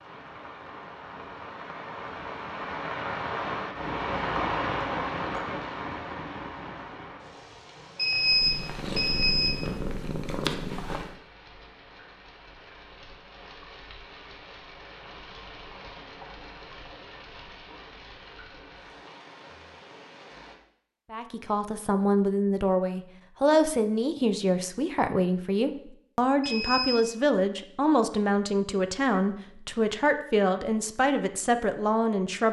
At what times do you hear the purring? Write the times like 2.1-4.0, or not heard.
8.2-11.2.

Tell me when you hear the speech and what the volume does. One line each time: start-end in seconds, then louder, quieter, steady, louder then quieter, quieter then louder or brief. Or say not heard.
21.1-32.4 steady.